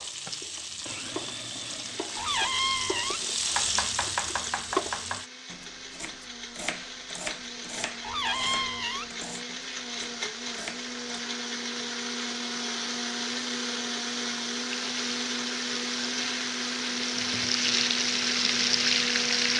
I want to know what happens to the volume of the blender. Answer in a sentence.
The loudness of the blender goes up.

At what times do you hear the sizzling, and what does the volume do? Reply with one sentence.
You can hear the sizzling from 0.0 to 5.3 s, getting louder; and from 14.7 to 19.5 s, getting louder.